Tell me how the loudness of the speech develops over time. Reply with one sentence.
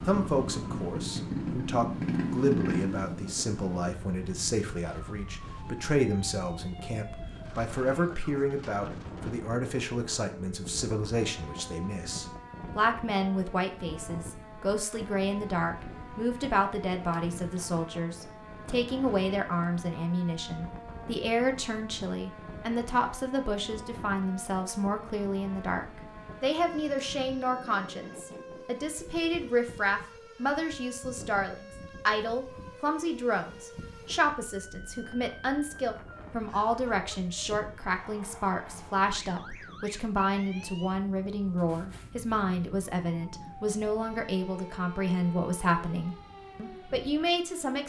The loudness of the speech stays about the same.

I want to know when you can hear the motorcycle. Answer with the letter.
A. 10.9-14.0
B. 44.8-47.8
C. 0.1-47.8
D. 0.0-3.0
D.